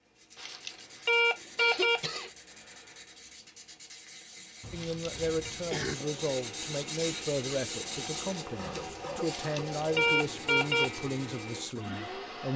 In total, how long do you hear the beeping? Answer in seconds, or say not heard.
4 s.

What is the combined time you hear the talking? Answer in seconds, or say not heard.
8 s.